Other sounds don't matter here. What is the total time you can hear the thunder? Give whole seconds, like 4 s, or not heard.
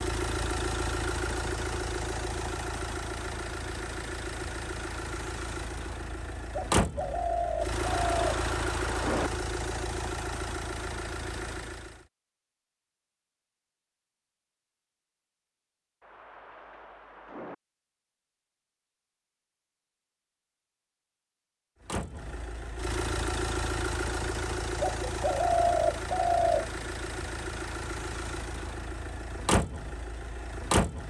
3 s.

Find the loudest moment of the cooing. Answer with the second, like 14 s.
26 s.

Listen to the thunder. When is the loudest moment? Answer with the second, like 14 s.
9 s.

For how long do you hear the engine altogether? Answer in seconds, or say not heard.
21 s.